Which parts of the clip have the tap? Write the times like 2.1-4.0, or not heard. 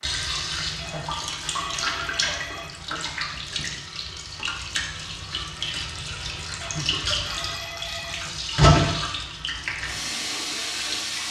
0.0-11.2.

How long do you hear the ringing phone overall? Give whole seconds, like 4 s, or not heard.
4 s.